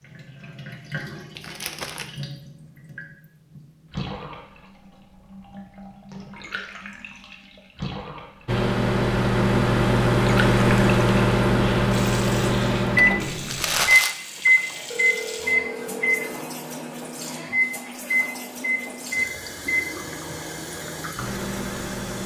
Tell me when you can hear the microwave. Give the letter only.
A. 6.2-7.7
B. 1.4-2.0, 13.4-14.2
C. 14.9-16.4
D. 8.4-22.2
D.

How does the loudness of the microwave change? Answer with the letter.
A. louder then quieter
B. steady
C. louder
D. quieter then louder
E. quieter
E.